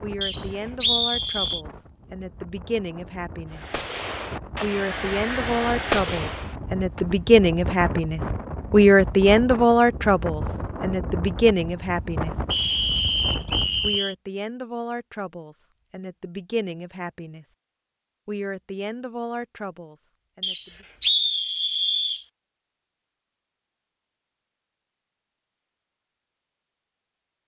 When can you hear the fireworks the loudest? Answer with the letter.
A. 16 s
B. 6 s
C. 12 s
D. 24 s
B.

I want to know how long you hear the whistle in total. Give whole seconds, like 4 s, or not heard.
5 s.